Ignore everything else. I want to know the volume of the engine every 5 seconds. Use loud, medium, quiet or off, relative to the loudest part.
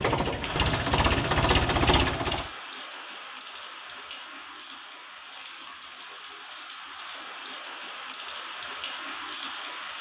loud, off.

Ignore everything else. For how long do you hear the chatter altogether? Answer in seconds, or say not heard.
not heard.